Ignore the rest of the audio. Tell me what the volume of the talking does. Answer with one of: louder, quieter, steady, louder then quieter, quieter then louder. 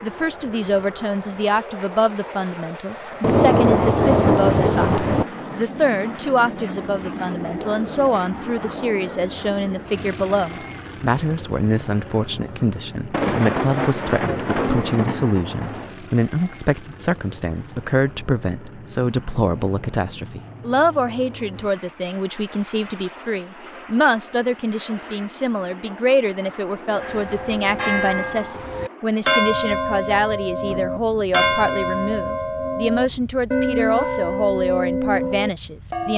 steady.